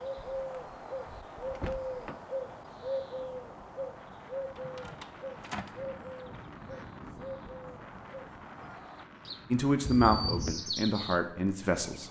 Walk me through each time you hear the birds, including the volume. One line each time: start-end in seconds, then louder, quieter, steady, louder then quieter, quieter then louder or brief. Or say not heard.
0.0-12.0 quieter then louder.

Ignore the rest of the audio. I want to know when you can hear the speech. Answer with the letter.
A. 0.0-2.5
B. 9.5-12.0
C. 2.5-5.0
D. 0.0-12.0
B.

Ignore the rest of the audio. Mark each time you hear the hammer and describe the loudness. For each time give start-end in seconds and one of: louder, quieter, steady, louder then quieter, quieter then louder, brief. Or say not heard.
not heard.